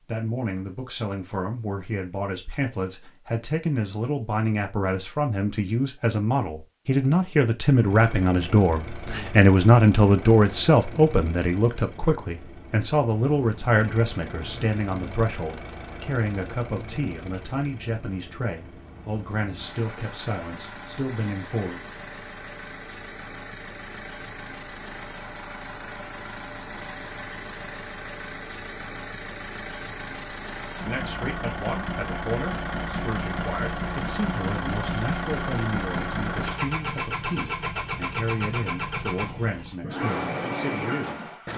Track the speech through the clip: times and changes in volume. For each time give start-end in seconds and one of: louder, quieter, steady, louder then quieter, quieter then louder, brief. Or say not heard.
0.1-21.8 louder then quieter
30.9-41.5 steady.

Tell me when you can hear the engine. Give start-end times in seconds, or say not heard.
7.7-41.5.